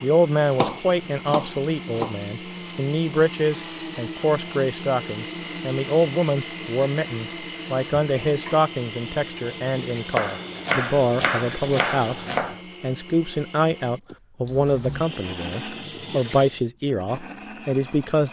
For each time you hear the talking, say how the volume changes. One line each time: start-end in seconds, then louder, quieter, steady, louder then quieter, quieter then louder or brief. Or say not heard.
0.0-18.2 steady.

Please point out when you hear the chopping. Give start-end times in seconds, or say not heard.
0.6-2.2, 10.1-12.6.